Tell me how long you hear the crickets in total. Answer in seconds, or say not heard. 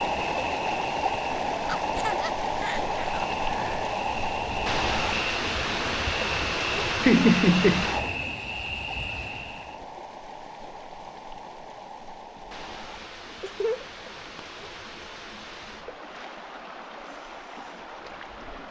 10 s.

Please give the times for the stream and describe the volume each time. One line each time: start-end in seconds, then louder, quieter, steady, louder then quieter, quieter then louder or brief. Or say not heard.
0.0-18.6 quieter.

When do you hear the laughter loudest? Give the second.
7 s.